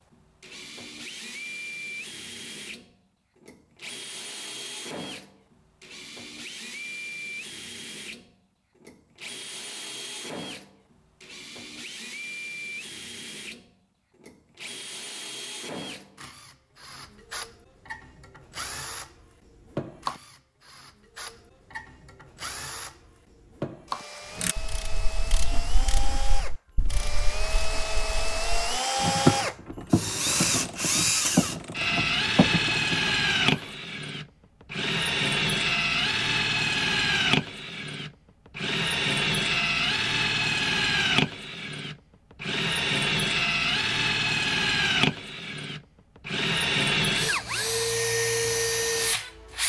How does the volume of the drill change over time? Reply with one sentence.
The loudness of the drill goes up.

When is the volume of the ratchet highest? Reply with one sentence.
The volume of the ratchet peaks at 29 seconds.